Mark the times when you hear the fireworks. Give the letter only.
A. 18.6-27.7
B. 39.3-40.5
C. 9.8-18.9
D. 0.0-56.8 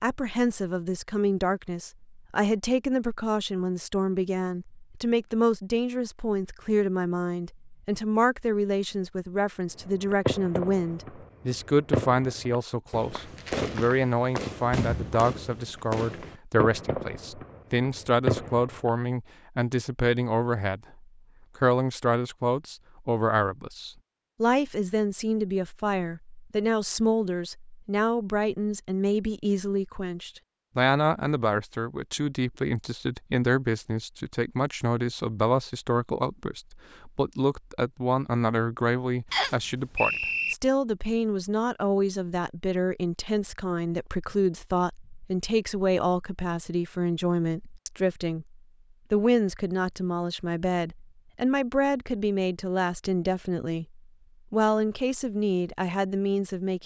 C.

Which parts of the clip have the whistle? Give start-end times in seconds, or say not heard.
39.3-40.5.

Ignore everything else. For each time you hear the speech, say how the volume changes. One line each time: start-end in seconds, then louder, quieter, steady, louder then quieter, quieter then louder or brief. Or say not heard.
0.0-56.8 steady.